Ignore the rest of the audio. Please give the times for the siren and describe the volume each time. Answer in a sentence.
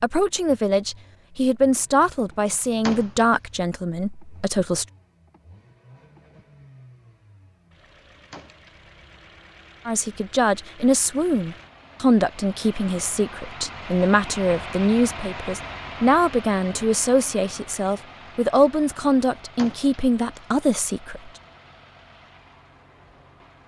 The siren can't be heard in this clip.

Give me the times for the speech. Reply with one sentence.
You can hear the speech from 0.0 to 4.8 s and from 9.8 to 21.3 s.